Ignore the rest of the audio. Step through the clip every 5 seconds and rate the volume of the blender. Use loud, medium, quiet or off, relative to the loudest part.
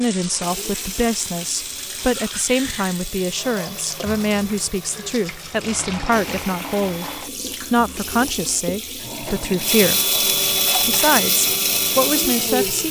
quiet, medium, loud.